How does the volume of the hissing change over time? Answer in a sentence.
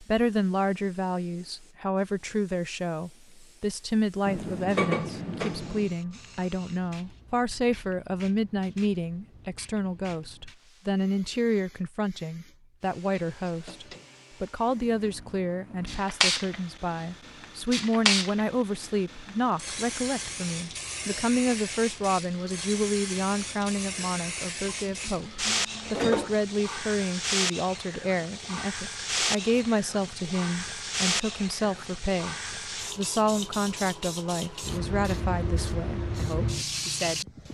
The volume of the hissing goes up.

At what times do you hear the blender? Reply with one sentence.
You can't hear the blender here.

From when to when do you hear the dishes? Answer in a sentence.
The dishes can be heard from 4.2 to 5.9 s and from 24.9 to 26.4 s.